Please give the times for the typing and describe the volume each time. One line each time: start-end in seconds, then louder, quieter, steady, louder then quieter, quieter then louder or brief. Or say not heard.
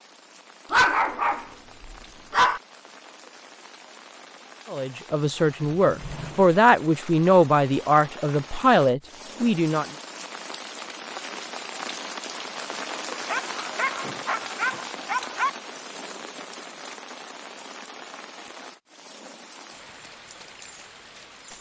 not heard.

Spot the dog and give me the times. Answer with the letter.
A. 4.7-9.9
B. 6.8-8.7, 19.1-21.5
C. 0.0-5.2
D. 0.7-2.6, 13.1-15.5
D.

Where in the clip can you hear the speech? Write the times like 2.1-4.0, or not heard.
4.7-9.9.